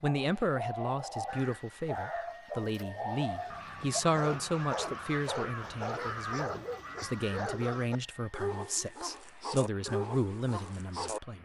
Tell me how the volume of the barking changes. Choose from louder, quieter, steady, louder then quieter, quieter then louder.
steady.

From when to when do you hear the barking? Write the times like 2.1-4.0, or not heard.
0.0-11.2.